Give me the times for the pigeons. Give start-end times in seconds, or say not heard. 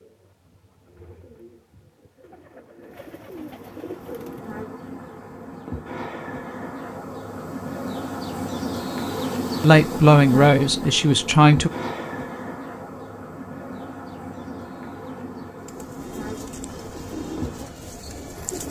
0.0-4.5, 15.6-18.6.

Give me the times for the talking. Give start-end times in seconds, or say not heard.
9.6-11.7.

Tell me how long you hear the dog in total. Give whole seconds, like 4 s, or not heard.
not heard.